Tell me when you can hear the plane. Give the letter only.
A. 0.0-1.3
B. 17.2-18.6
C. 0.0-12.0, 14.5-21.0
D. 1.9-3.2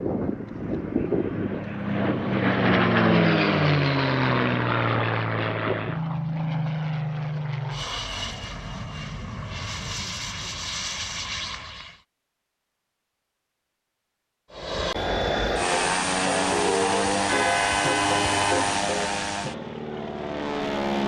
C.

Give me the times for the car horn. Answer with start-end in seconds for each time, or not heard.
17.2-18.6.